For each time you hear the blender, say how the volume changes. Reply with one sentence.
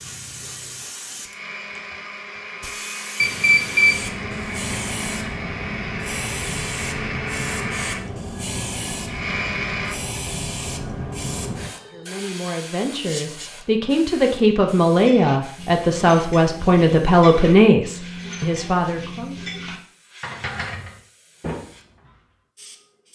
The blender can be heard from 0.0 to 9.9 s, getting louder.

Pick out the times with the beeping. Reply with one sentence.
You can hear the beeping from 3.2 to 4.0 s.